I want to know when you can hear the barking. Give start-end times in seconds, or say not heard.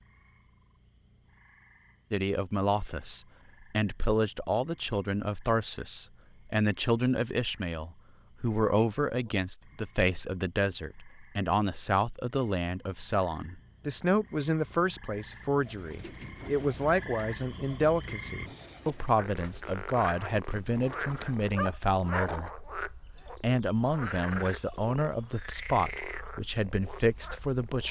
21.1-22.6.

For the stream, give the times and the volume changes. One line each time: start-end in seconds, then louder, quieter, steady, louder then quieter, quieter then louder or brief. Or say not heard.
not heard.